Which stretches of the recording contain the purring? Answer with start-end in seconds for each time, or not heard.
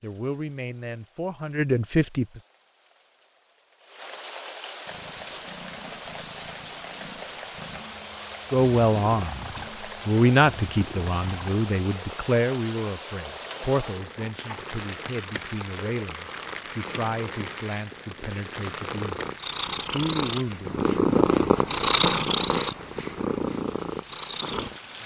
4.8-25.0.